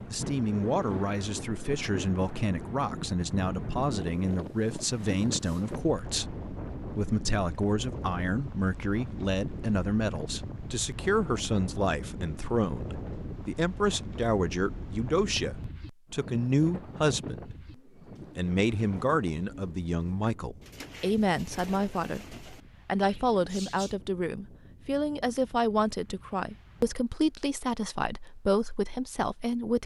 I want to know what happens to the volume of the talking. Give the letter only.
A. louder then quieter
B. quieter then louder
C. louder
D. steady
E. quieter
D.